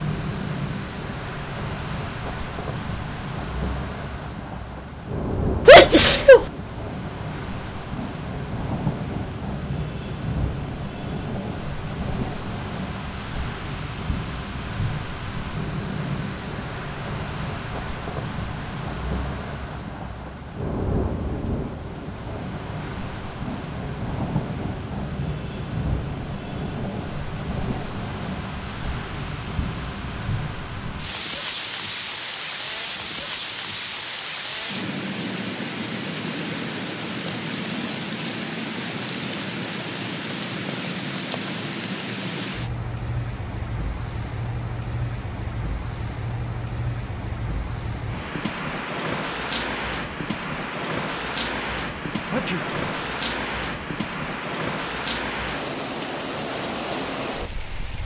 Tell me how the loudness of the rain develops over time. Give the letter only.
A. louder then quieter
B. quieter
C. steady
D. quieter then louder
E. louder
C.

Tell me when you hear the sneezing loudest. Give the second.
6 s.